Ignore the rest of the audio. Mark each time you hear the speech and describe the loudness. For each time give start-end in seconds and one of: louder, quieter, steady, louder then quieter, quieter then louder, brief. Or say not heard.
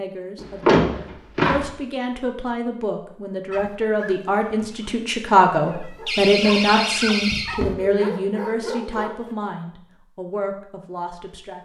0.0-11.5 louder then quieter.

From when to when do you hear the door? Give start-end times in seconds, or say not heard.
0.4-1.6, 6.0-7.8.